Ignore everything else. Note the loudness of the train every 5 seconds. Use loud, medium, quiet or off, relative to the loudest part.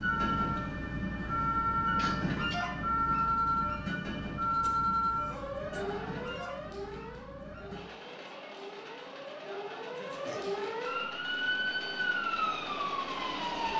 loud, medium, medium.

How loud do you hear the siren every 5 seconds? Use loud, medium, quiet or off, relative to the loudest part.
loud, medium, loud.